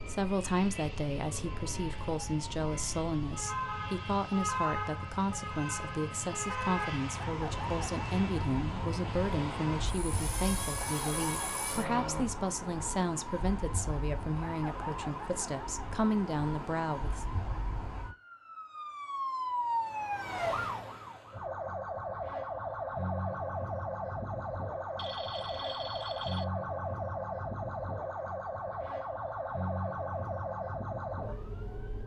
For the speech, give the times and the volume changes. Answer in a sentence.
You can hear the speech from 0.1 to 17.2 s, at a steady volume.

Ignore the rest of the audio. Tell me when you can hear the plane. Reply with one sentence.
The plane can be heard from 0.0 to 12.2 s.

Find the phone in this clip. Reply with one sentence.
The phone can be heard from 24.9 to 26.4 s.